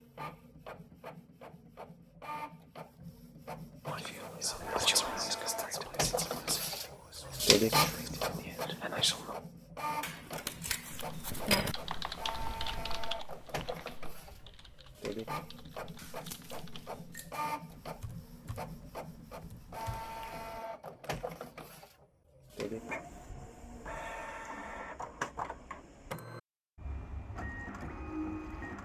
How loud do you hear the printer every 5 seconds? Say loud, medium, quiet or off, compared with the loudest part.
quiet, loud, medium, medium, medium, medium.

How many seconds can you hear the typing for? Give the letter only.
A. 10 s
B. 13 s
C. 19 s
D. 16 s
A.